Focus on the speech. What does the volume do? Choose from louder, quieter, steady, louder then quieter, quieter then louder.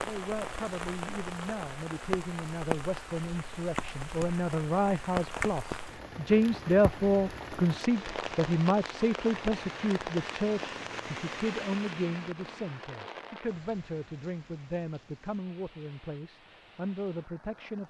louder then quieter.